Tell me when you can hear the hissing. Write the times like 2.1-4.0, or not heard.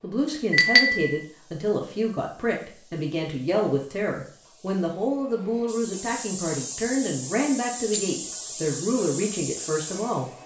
0.0-10.4.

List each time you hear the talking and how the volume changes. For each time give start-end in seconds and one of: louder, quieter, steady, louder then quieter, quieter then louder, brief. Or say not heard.
0.0-10.3 steady.